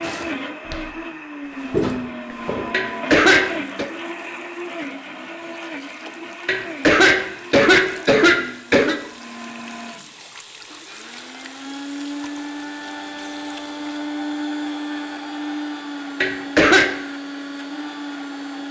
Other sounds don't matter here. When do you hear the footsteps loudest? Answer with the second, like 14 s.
2 s.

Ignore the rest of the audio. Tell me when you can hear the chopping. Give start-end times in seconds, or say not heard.
not heard.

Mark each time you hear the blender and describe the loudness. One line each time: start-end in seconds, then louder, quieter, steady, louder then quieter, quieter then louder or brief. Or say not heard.
0.0-18.6 quieter then louder.